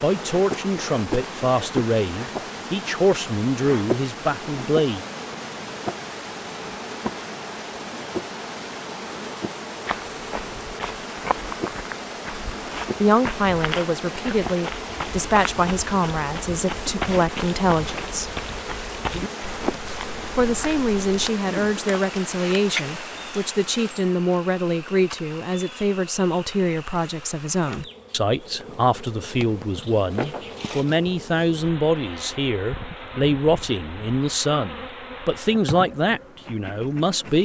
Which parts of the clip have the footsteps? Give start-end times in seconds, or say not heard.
9.8-21.3.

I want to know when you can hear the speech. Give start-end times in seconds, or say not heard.
0.0-5.0, 13.0-18.3, 20.3-37.4.